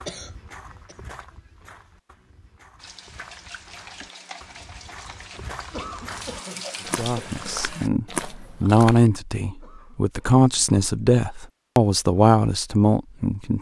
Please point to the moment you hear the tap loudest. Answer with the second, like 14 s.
7 s.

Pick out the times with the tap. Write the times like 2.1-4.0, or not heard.
2.8-7.9.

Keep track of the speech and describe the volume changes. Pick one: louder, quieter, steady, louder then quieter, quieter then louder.
louder.